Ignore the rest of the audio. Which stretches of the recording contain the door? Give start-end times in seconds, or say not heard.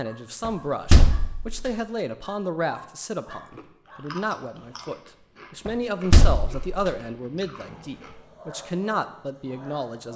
0.5-1.7, 5.7-6.7.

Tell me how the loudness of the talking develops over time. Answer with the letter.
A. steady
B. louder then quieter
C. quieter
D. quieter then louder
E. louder
A.